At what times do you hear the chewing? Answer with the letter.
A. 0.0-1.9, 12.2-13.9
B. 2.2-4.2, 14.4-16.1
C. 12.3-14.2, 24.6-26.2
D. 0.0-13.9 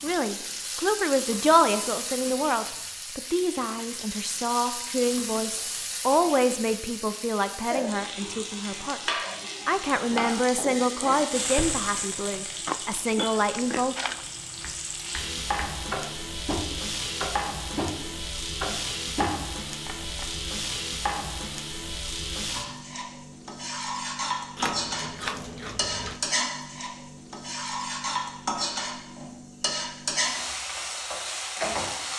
C.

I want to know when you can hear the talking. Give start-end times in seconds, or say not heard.
0.0-13.9.